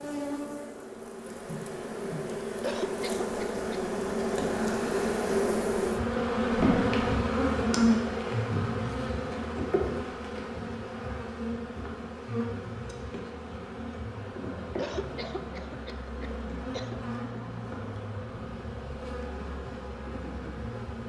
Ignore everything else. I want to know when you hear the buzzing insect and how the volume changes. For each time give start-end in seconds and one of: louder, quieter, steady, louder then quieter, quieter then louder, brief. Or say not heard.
0.0-21.0 louder then quieter.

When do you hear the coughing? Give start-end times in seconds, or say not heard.
2.6-3.6, 14.8-17.0.